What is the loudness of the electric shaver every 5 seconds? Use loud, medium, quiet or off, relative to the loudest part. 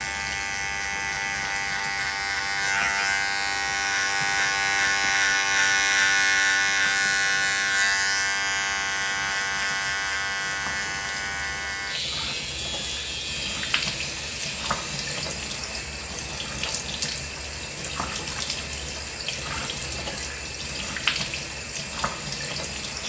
loud, loud, medium, off, off.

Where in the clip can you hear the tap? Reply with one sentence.
You can hear the tap from 0.0 to 23.0 s.